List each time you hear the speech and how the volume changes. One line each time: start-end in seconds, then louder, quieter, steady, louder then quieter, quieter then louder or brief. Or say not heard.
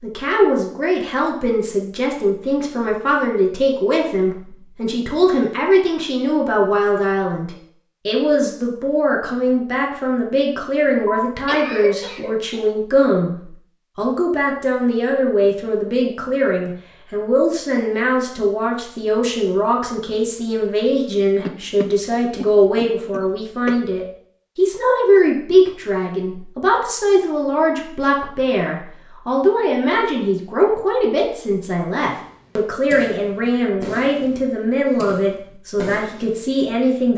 0.0-37.1 steady.